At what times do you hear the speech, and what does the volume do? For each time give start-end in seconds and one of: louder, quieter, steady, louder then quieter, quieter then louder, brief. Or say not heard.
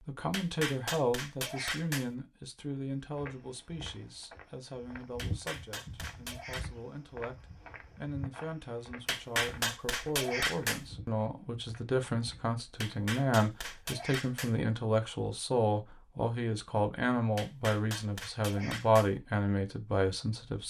0.1-20.6 quieter then louder.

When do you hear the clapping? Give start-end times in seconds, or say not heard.
0.3-2.1, 5.2-6.7, 9.1-10.8, 12.8-14.6, 17.4-19.1.